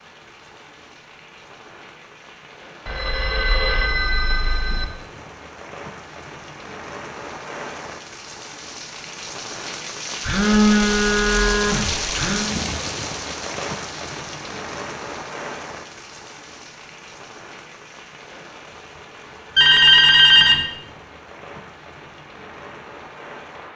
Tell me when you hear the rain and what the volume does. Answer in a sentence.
You can hear the rain from 0.0 to 23.7 s, getting louder then quieter.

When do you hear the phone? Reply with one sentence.
The phone can be heard from 2.9 to 4.8 s, from 10.2 to 12.5 s and from 19.6 to 20.6 s.